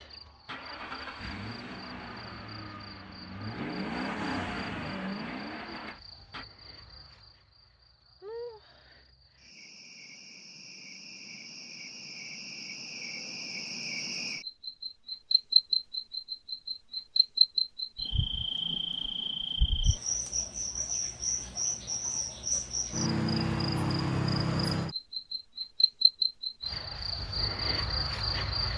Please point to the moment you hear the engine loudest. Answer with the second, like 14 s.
4 s.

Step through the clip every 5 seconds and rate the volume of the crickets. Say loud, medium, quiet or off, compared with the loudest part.
quiet, quiet, medium, loud, loud, loud.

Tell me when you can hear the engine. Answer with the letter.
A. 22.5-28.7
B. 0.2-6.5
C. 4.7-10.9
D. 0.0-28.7
B.